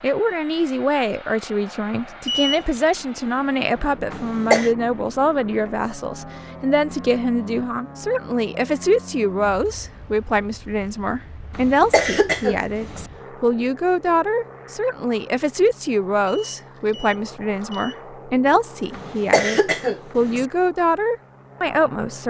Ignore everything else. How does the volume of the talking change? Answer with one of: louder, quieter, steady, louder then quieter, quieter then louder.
steady.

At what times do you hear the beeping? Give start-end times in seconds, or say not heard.
2.2-2.9, 16.2-18.0.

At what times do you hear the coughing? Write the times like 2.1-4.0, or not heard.
4.1-4.7, 11.6-13.1, 18.9-20.4.